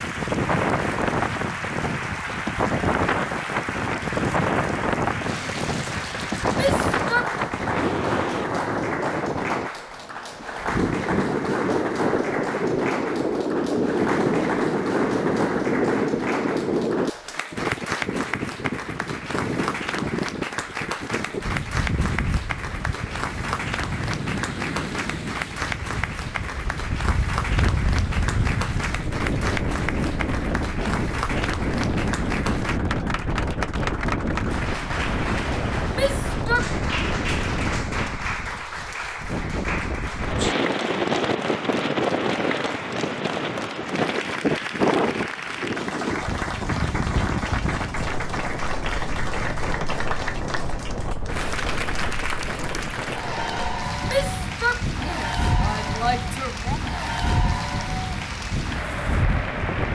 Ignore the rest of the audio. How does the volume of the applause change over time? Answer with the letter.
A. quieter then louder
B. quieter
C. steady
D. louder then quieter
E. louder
C.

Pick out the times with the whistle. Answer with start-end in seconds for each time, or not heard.
not heard.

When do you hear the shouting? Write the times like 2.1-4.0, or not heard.
6.5-7.3, 35.9-36.7, 54.0-56.8.